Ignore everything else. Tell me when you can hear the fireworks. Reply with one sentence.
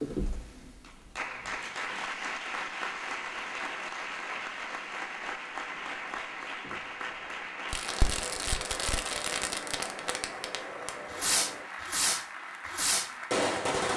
The fireworks can be heard from 7.7 to 13.9 s.